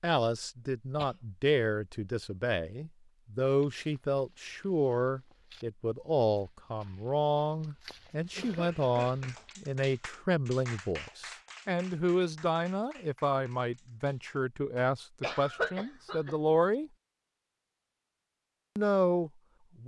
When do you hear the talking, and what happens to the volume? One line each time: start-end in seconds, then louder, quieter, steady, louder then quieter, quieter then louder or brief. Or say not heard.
0.0-16.9 steady
18.8-19.8 brief.